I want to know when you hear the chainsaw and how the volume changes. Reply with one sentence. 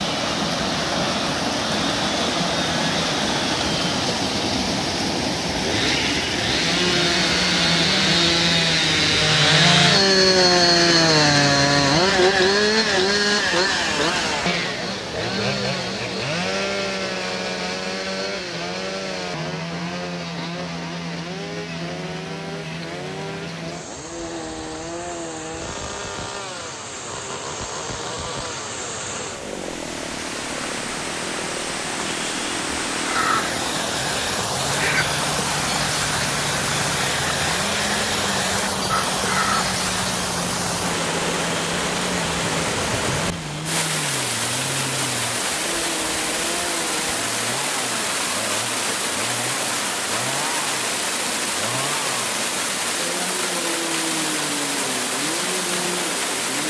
The chainsaw can be heard from 0.0 to 56.6 s, getting quieter.